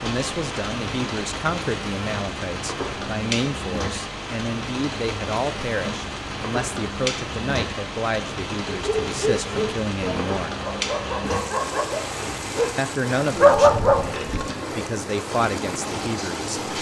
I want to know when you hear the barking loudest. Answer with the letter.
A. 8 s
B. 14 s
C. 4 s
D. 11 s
B.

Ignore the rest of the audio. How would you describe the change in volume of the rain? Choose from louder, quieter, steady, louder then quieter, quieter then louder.
steady.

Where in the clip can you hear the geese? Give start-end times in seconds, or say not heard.
not heard.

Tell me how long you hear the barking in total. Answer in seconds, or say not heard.
6 s.